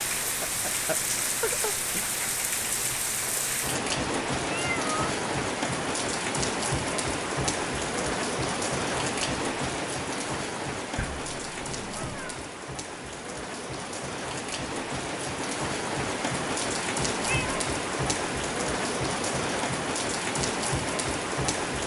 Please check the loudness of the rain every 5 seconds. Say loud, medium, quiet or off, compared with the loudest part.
loud, loud, medium, loud, loud.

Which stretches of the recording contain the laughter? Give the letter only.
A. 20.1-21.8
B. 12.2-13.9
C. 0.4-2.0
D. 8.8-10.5
C.